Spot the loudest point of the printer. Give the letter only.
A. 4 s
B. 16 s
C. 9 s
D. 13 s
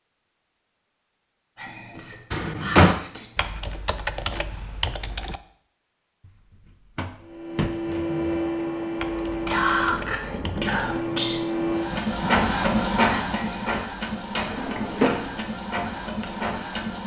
D.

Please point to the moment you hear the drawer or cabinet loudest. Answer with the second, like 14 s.
3 s.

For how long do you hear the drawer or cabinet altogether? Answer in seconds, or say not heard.
3 s.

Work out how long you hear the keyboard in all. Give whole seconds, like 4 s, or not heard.
4 s.